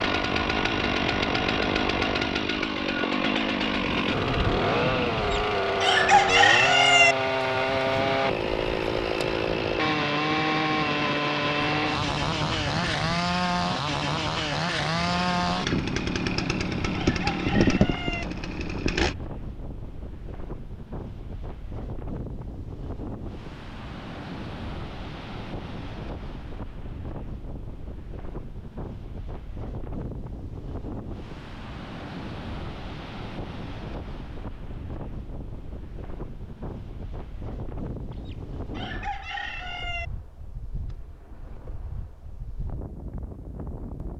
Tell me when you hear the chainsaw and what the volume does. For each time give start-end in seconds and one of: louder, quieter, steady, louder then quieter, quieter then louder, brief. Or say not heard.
0.0-19.1 steady.